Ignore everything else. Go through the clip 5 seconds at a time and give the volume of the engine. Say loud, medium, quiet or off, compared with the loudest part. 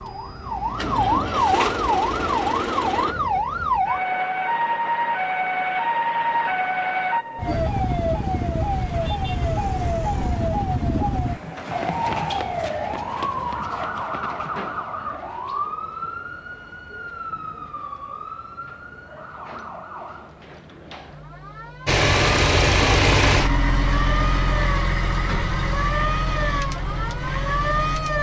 medium, off, off, off, loud, medium.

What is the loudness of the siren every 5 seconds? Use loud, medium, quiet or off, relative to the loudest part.
loud, loud, loud, medium, medium, loud.